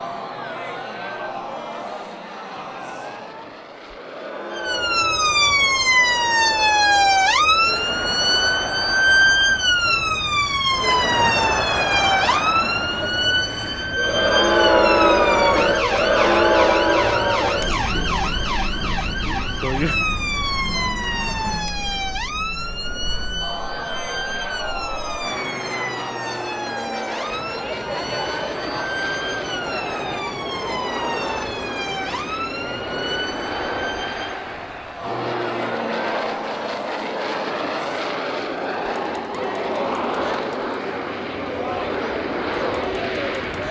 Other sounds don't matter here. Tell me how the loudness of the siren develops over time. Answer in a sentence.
The volume of the siren goes down.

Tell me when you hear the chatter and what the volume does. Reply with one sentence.
You can hear the chatter from 0.0 to 43.6 s, getting louder then quieter.